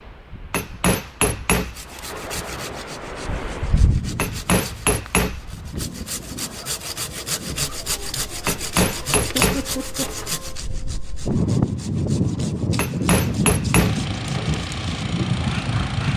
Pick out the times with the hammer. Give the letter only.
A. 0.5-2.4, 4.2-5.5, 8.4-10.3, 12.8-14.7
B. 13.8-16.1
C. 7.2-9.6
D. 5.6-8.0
A.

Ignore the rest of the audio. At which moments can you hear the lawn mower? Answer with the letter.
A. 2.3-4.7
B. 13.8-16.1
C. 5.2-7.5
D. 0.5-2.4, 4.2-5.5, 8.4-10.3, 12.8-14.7
B.